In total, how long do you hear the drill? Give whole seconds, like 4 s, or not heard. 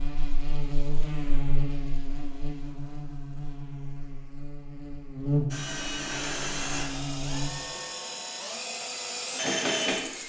5 s.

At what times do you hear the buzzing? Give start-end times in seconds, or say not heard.
0.0-7.5.